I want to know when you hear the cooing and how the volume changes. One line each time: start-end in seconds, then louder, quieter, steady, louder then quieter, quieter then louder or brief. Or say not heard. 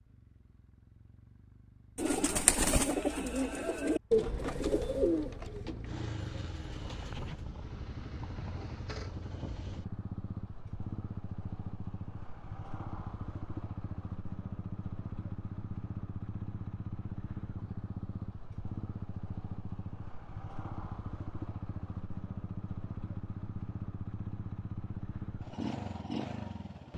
1.9-7.5 quieter.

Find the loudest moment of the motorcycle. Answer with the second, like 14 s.
26 s.